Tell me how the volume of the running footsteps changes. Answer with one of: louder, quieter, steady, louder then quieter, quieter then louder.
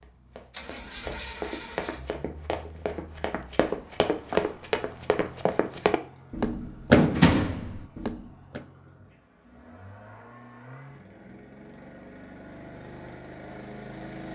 louder.